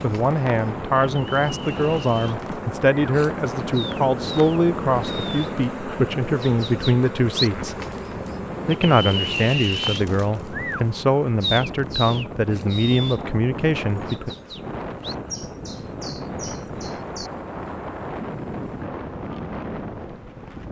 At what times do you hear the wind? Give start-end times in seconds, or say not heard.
0.0-20.6.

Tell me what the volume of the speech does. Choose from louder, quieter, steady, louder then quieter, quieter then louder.
steady.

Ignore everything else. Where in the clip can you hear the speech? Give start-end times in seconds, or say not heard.
0.0-7.8, 8.7-14.3.